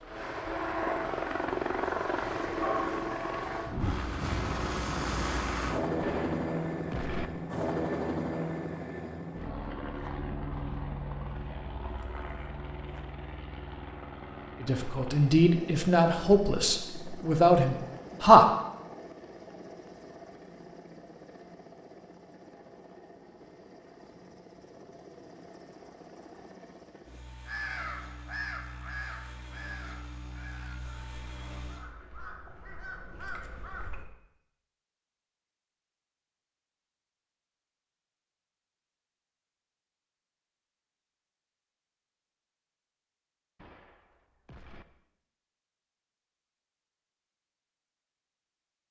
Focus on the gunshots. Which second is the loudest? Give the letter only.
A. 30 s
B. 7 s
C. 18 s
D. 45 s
B.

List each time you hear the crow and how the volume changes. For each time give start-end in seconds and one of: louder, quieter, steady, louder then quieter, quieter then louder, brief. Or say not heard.
27.4-34.1 quieter then louder.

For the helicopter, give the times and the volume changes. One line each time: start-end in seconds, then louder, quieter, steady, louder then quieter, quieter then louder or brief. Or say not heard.
0.0-31.9 quieter.